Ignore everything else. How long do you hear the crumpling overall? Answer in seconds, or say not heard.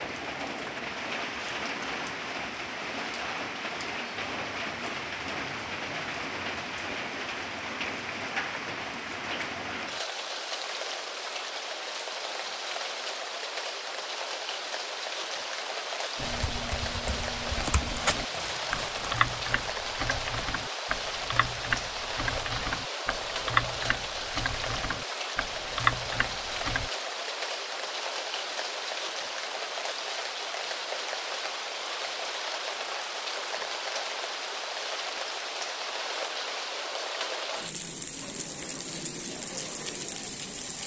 2 s.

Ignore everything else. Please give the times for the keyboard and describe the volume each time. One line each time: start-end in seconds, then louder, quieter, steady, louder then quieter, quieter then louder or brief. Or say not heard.
16.1-26.9 louder.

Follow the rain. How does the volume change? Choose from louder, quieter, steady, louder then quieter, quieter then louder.
steady.